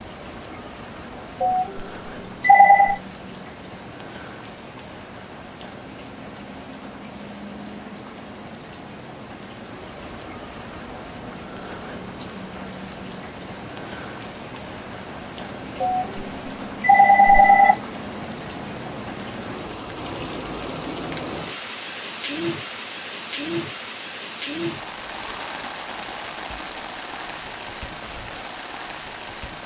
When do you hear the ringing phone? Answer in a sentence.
You can hear the ringing phone from 1.4 to 3.0 s and from 15.8 to 17.8 s.